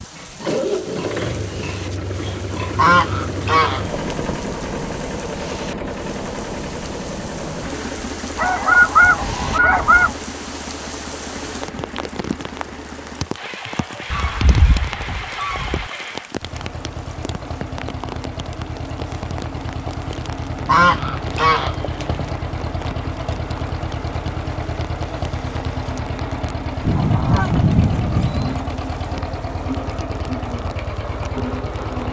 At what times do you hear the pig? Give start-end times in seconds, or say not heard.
0.1-2.9.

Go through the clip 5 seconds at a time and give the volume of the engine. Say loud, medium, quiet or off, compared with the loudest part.
loud, loud, medium, medium, loud, loud, loud.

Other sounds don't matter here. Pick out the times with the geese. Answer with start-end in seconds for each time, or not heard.
2.8-4.4, 8.3-10.2, 14.1-15.9, 20.6-22.3, 26.9-28.6.